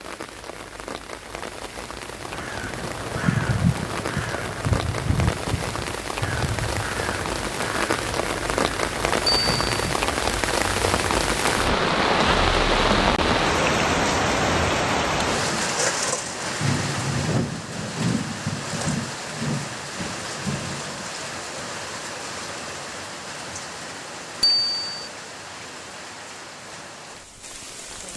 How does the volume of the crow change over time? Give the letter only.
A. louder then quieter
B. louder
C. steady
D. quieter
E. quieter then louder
D.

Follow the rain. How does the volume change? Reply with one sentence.
The volume of the rain goes up, then down.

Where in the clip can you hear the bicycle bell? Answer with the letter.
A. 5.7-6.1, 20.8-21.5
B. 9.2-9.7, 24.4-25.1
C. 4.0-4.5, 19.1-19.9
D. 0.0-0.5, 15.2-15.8
B.